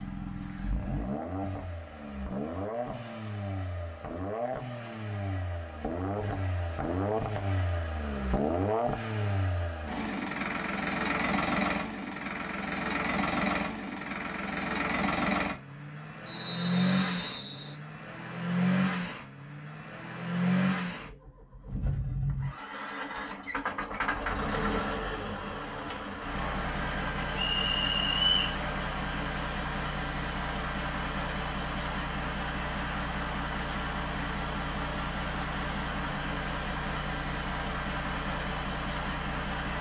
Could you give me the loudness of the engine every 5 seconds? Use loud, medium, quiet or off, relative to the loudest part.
medium, loud, loud, loud, loud, loud, loud, loud.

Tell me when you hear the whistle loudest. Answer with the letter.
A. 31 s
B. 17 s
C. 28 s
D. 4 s
C.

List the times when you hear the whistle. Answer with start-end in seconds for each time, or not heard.
16.2-17.8, 27.4-28.6.